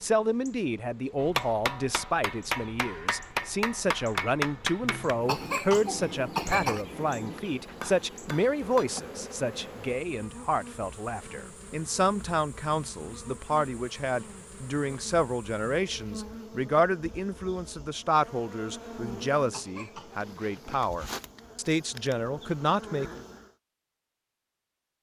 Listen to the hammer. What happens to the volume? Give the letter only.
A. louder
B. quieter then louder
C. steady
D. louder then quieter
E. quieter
E.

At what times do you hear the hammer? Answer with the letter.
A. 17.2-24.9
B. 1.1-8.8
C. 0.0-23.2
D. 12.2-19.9
B.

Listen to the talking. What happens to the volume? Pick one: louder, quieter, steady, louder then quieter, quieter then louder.
steady.